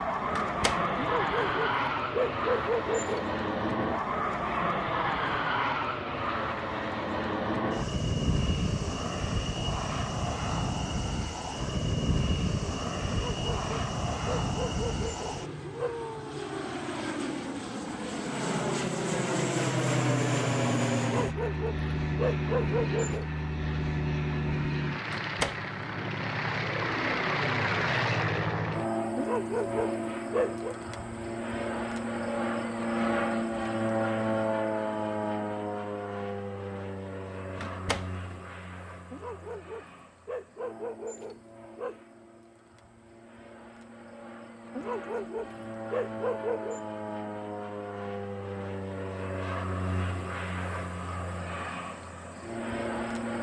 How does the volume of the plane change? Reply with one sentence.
The volume of the plane goes down.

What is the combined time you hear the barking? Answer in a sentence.
You can hear the barking for 14 seconds altogether.